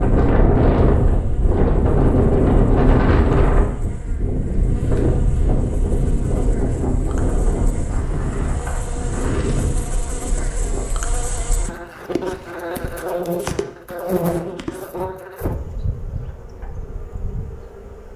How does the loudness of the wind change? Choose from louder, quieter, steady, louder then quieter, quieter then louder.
quieter.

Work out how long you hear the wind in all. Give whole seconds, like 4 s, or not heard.
11 s.